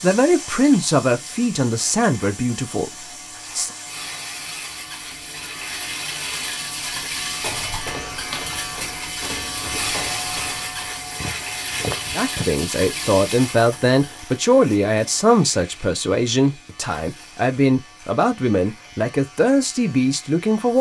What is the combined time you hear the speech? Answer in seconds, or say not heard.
12 s.